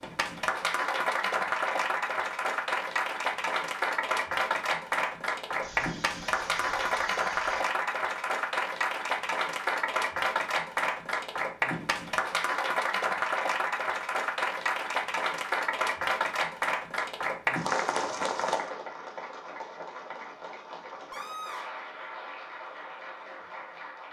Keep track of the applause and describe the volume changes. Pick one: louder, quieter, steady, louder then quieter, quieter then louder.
quieter.